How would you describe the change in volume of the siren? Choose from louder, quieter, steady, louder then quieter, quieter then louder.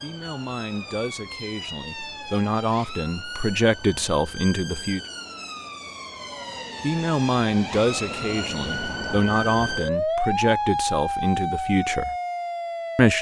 louder.